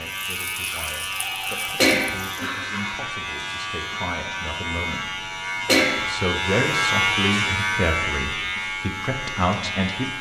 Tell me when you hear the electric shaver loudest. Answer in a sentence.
The volume of the electric shaver peaks at 7 seconds.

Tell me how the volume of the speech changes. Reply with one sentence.
The loudness of the speech goes up.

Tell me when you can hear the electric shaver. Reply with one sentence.
The electric shaver can be heard from 0.0 to 10.1 s.